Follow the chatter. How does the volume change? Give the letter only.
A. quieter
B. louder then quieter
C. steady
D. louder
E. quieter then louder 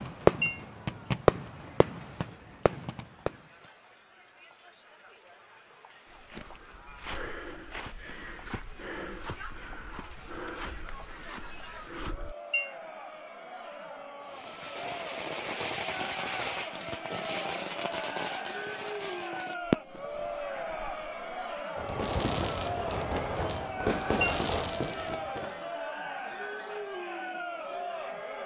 D.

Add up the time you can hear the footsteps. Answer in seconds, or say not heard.
6 s.